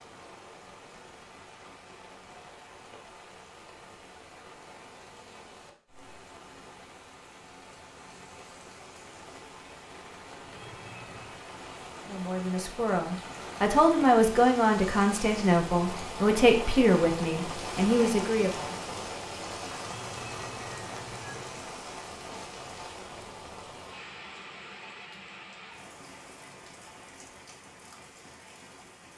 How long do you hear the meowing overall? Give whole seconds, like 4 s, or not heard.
3 s.